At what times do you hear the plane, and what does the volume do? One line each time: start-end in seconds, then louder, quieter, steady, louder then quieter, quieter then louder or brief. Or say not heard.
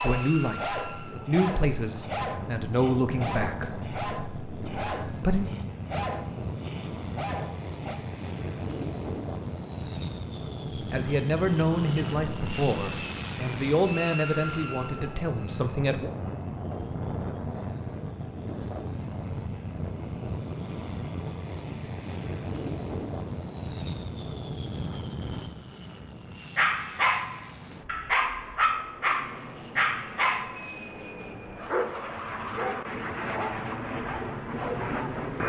0.0-35.4 steady.